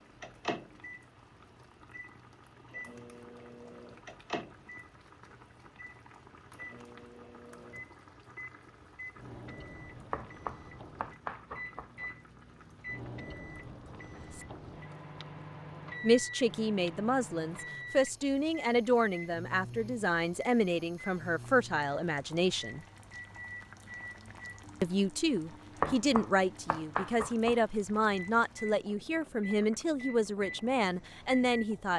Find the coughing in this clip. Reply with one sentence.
The coughing can't be heard in this clip.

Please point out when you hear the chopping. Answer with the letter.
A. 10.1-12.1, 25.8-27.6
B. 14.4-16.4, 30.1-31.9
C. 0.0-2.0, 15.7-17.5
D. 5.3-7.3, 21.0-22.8
A.